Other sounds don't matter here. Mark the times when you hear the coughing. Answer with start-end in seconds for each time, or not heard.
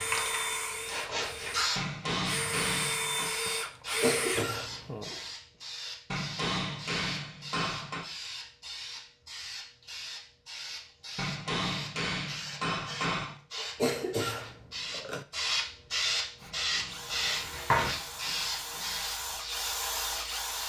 4.0-4.9, 13.8-15.2.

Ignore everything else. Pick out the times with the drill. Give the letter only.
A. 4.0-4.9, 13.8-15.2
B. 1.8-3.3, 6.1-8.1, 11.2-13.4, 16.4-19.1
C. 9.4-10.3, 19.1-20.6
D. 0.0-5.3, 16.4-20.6
D.